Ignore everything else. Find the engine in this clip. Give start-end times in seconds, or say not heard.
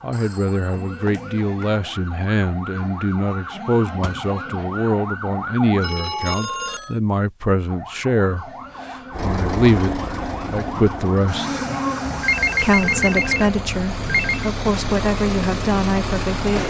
9.1-16.6.